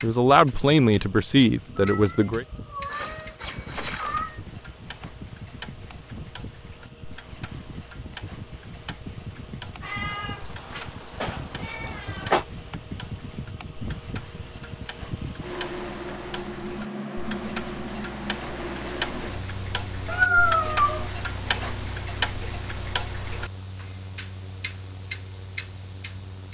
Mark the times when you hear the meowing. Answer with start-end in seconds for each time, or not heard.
1.8-4.4, 9.8-12.4, 20.1-21.1.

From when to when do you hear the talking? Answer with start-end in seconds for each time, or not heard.
0.0-2.5.